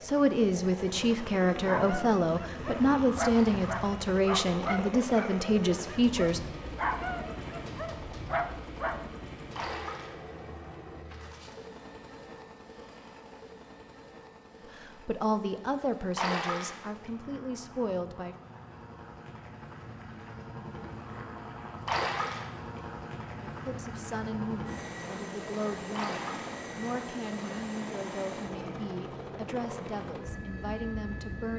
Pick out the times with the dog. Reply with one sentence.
You can hear the dog from 1.6 to 9.1 s.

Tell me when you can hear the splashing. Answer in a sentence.
You can hear the splashing from 3.3 to 3.7 s, from 9.6 to 10.2 s, from 16.1 to 16.8 s, from 21.9 to 22.5 s and from 25.9 to 26.6 s.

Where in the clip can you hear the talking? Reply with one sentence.
You can hear the talking from 0.0 to 6.4 s, from 14.8 to 18.4 s and from 23.6 to 31.5 s.